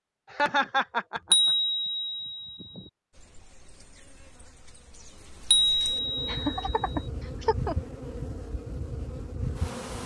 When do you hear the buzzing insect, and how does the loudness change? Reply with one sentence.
You can hear the buzzing insect from 3.1 to 10.0 s, getting louder.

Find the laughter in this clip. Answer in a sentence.
You can hear the laughter from 0.3 to 1.5 s and from 6.2 to 7.8 s.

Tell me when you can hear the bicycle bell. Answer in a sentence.
The bicycle bell can be heard from 1.3 to 2.9 s and from 5.5 to 7.0 s.